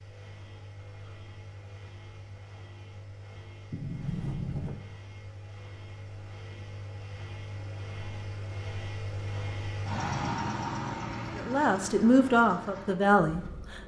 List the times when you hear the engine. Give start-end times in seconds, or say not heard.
0.0-13.8.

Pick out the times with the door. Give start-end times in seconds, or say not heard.
3.7-4.8.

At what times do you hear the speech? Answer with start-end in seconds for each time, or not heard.
11.3-13.8.